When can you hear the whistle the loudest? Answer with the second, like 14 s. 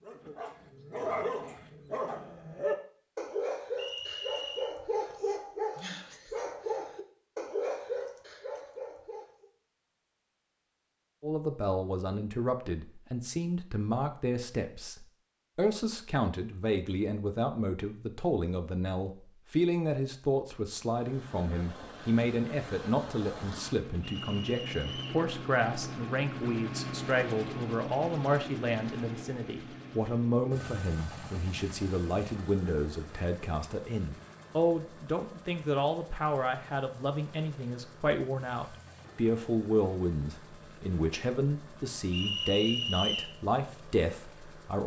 43 s.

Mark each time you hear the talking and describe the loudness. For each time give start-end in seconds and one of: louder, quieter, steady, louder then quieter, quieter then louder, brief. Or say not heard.
11.2-44.8 steady.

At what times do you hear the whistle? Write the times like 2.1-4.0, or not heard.
3.8-4.7, 24.0-25.2, 42.1-43.4.